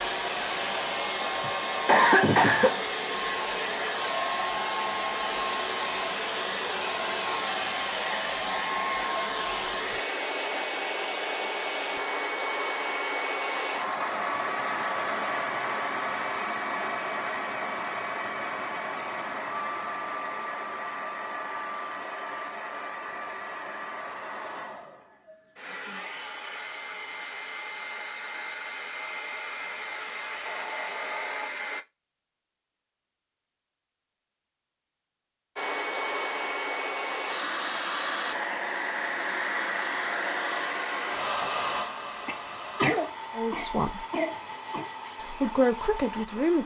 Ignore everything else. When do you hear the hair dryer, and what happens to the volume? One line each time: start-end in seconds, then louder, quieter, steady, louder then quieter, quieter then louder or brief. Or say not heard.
0.0-31.9 quieter
35.5-46.6 quieter.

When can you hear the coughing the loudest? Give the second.
2 s.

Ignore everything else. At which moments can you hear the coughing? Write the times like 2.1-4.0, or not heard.
1.4-2.8, 42.2-44.9.